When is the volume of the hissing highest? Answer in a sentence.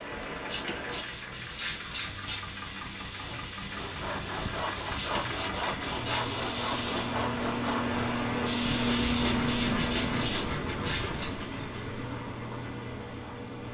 The volume of the hissing peaks at 9 seconds.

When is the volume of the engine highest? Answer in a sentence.
The volume of the engine peaks at 9 seconds.